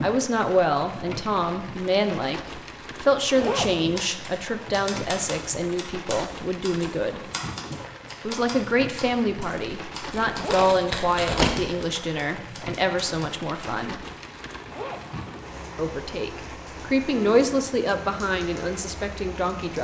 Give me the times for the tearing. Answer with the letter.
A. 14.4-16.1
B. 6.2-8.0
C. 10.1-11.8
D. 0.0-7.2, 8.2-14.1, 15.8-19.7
C.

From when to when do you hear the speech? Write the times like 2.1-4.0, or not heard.
0.0-7.2, 8.2-14.1, 15.8-19.7.